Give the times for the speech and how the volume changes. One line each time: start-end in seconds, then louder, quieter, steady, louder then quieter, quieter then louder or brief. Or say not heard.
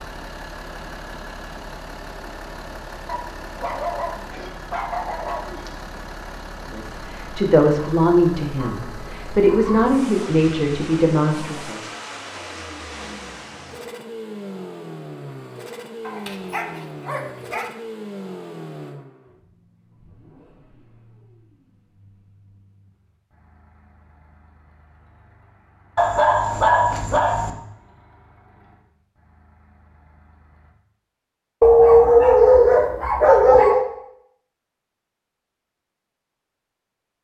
6.7-11.8 steady.